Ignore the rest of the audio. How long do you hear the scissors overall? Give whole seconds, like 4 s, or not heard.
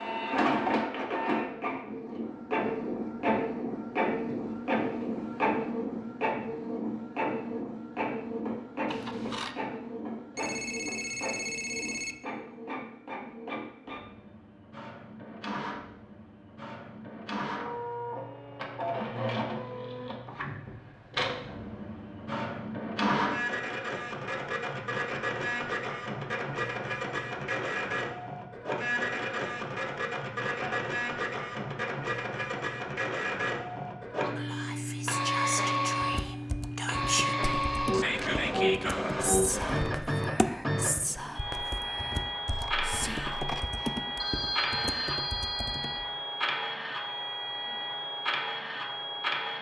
2 s.